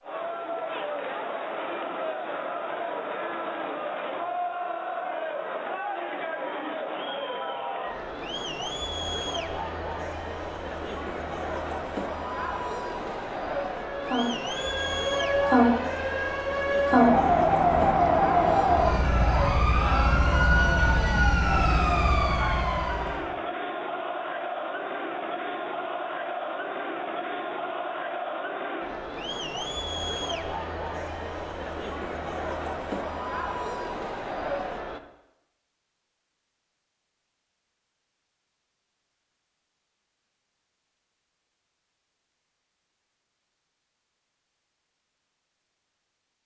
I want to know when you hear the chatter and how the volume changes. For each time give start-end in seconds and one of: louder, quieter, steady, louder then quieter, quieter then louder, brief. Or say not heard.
0.0-35.0 steady.